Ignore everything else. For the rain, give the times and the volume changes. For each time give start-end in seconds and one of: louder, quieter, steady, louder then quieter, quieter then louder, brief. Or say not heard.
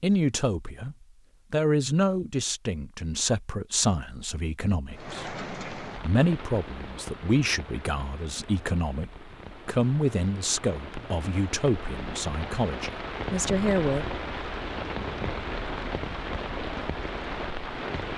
4.9-18.1 quieter then louder.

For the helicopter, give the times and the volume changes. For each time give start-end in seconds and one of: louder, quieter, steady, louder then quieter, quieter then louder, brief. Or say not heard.
not heard.